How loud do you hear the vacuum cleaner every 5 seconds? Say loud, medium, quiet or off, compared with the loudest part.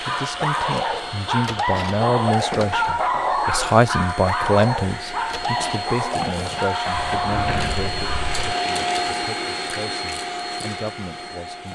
medium, loud, medium.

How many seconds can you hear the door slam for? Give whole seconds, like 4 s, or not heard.
2 s.